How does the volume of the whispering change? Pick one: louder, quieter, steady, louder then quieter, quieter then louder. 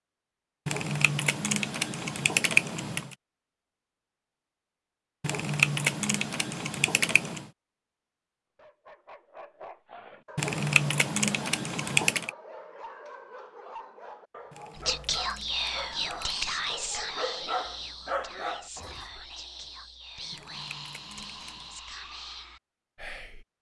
quieter.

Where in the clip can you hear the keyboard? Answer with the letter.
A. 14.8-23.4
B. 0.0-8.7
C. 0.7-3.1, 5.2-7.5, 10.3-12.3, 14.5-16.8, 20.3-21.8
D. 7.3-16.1
C.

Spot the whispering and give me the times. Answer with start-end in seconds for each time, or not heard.
14.8-23.4.